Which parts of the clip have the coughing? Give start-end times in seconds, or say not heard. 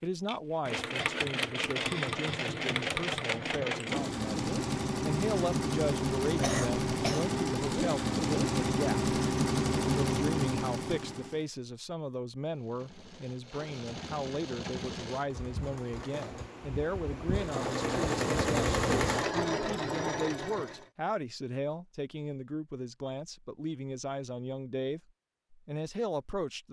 6.3-7.2.